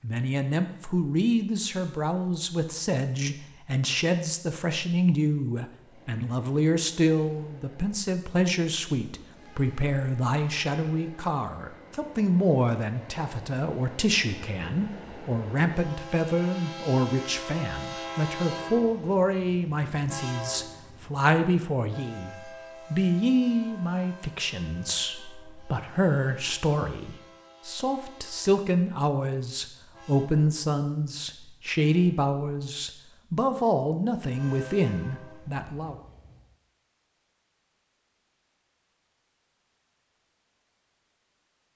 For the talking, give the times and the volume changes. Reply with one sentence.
You can hear the talking from 0.0 to 36.0 s, at a steady volume.